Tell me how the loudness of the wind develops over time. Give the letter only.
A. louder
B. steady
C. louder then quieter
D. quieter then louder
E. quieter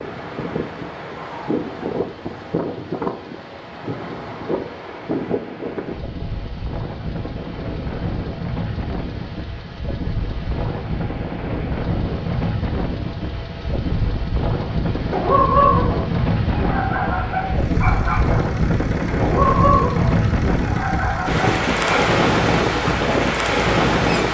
A.